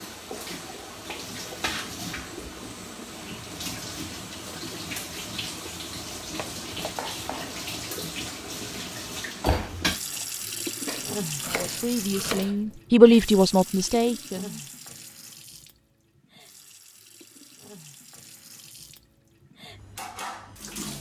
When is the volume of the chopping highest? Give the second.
12 s.